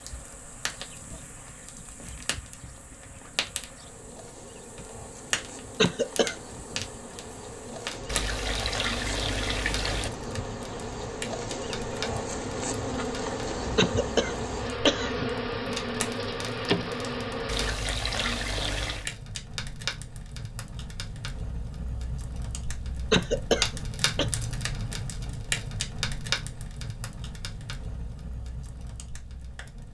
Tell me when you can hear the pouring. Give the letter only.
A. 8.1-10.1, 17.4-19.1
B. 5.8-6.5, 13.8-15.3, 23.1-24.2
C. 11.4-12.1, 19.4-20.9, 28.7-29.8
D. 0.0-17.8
A.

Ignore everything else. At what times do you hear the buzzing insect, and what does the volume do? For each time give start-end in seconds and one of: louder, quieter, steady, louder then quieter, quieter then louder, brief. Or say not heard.
0.0-17.8 louder.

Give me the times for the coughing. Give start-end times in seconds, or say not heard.
5.8-6.5, 13.8-15.3, 23.1-24.2.